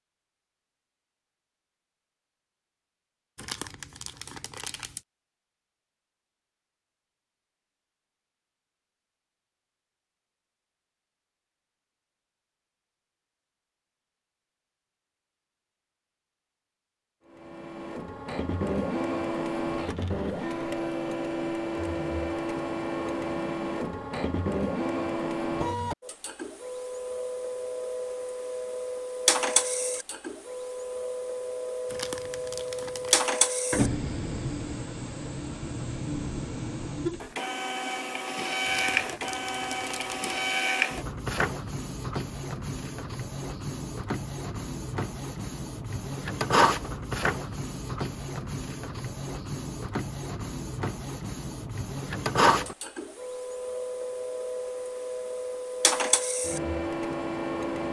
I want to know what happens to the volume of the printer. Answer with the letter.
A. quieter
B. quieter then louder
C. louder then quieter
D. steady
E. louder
D.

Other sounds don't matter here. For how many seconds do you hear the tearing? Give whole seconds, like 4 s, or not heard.
5 s.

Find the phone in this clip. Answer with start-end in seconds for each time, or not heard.
not heard.